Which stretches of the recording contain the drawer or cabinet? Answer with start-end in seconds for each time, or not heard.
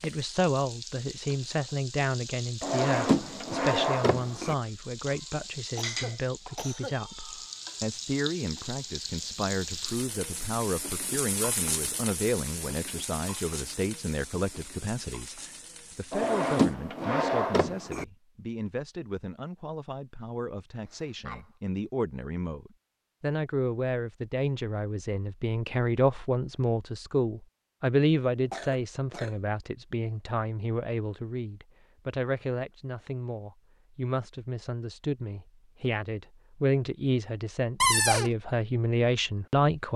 2.6-4.5, 16.1-18.1, 37.8-38.3.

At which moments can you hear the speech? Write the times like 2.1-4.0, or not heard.
0.0-39.9.